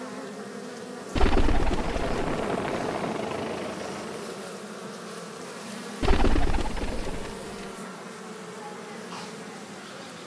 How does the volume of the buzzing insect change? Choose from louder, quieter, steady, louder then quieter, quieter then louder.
steady.